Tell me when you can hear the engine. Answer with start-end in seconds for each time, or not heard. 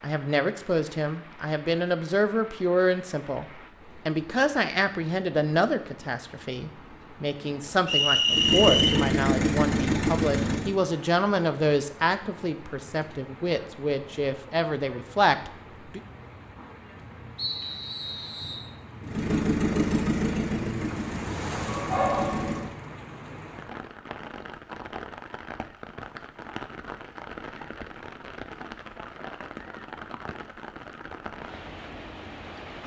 8.2-10.8, 19.0-22.7.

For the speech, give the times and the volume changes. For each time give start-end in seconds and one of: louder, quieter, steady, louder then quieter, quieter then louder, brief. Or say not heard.
0.0-16.0 steady.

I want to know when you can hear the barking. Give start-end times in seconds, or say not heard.
21.6-22.7.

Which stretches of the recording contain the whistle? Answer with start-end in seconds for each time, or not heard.
7.8-9.0, 17.4-18.6.